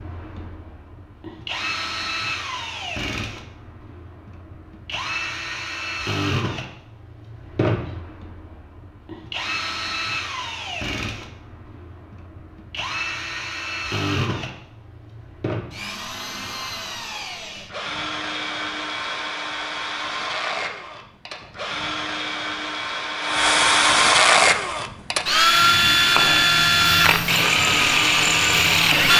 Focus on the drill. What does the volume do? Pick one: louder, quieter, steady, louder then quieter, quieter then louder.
louder.